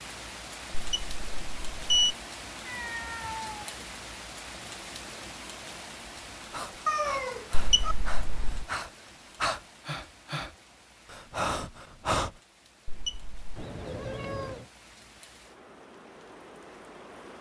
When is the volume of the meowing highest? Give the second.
7 s.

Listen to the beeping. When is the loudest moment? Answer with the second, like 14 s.
2 s.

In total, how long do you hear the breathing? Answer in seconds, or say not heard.
6 s.